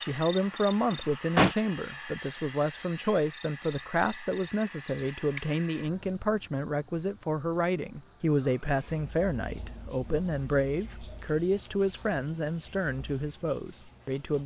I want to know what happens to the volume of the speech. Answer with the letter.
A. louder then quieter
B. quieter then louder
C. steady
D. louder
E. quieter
C.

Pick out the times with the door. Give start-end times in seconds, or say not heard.
0.9-1.6.